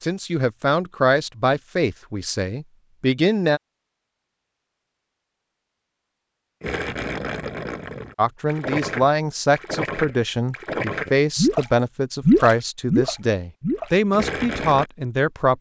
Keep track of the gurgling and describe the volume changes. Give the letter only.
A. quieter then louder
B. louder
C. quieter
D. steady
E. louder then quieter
E.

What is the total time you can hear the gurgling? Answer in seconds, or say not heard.
8 s.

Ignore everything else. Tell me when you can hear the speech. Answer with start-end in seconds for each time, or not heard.
0.0-3.6, 8.2-15.5.